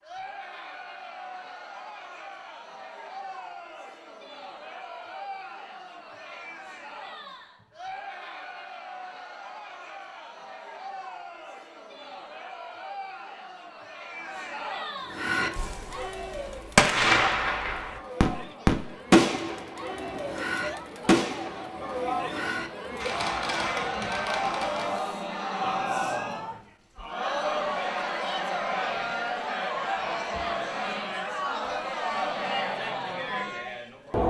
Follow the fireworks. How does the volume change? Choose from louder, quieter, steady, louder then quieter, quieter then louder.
quieter.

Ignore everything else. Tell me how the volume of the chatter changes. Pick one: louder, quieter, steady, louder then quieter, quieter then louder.
louder.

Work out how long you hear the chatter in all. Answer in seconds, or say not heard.
34 s.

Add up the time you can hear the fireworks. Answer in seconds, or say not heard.
10 s.